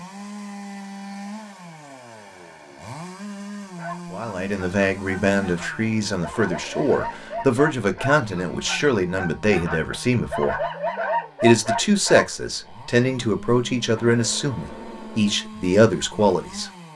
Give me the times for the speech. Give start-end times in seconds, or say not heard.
4.1-10.6, 11.4-16.7.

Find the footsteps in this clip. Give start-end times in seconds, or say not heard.
not heard.